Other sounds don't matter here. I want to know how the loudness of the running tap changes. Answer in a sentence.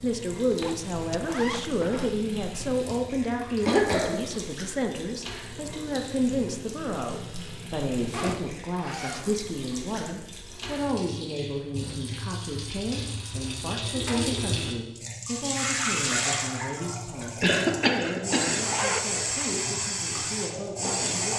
The loudness of the running tap goes up.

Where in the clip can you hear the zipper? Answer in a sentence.
The zipper can be heard from 0.5 to 2.1 s, from 8.1 to 9.3 s and from 18.6 to 19.6 s.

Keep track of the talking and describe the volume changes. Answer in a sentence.
The loudness of the talking goes down.